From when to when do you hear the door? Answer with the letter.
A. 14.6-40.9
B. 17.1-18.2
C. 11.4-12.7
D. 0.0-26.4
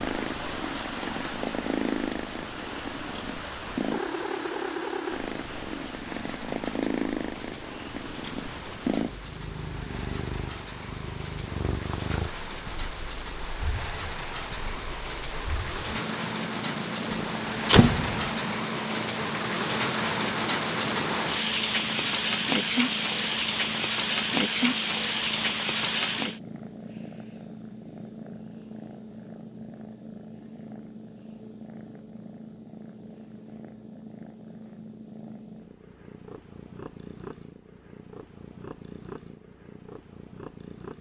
B.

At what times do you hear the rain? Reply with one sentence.
You can hear the rain from 0.0 to 26.4 s.